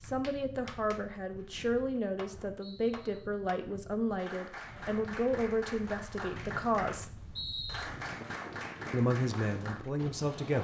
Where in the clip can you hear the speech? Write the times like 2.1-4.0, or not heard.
0.0-7.2, 8.9-10.6.